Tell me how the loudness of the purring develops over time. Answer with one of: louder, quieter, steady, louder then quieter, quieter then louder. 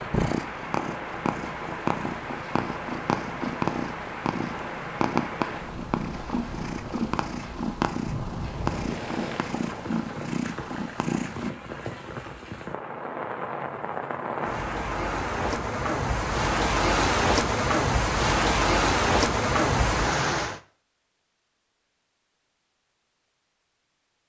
steady.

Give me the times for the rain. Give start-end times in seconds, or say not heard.
0.0-20.6.